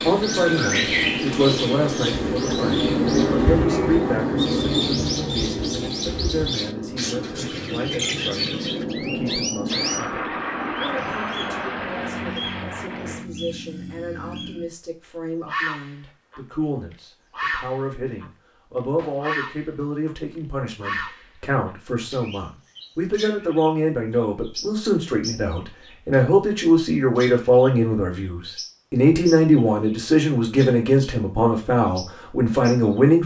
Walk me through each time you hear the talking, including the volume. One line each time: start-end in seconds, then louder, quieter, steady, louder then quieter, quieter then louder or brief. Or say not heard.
0.1-33.2 quieter then louder.